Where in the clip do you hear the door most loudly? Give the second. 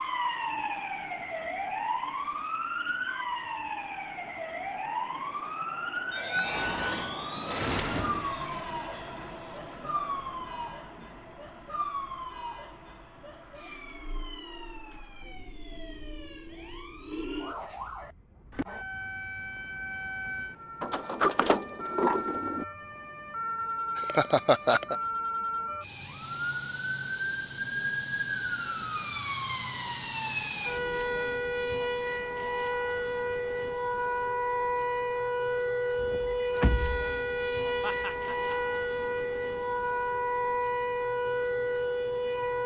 21 s.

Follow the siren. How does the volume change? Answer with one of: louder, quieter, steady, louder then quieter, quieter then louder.
quieter then louder.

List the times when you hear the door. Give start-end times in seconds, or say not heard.
6.5-8.2, 20.8-22.6, 36.0-37.1.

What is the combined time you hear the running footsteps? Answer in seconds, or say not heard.
not heard.